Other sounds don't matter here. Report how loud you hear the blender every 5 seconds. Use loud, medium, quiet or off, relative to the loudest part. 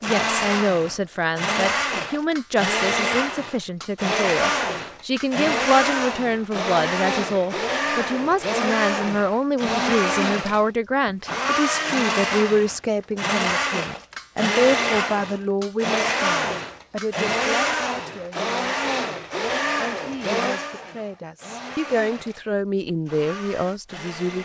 loud, loud, loud, loud, medium.